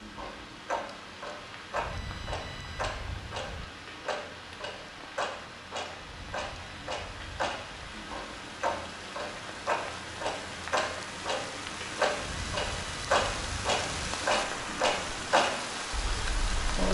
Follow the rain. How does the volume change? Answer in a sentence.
The volume of the rain goes up.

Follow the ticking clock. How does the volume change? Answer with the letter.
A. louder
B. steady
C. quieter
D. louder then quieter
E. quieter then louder
A.